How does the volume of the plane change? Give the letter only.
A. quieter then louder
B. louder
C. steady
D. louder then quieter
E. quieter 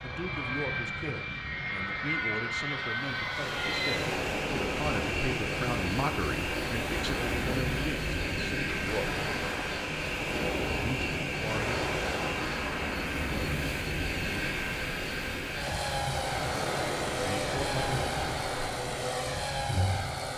C.